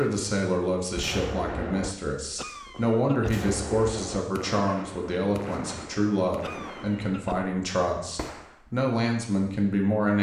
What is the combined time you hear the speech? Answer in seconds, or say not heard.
10 s.